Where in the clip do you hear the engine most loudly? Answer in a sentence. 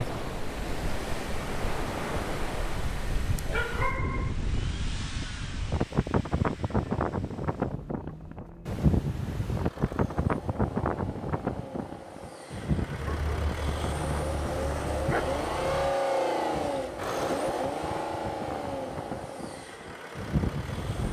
The volume of the engine peaks at 16 seconds.